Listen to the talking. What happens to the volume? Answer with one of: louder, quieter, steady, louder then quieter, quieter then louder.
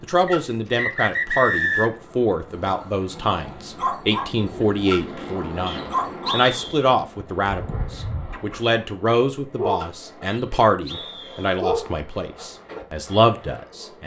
steady.